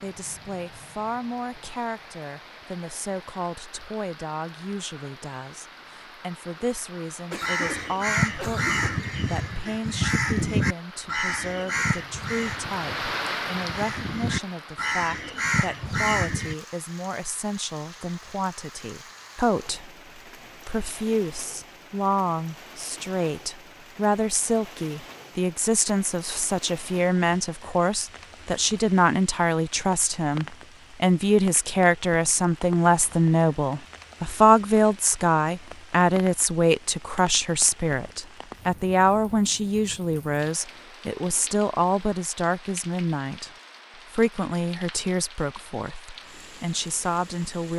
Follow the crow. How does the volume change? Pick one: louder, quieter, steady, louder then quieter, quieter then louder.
quieter then louder.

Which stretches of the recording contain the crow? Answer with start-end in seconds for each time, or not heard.
7.4-16.6.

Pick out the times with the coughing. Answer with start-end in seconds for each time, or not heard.
7.3-9.1.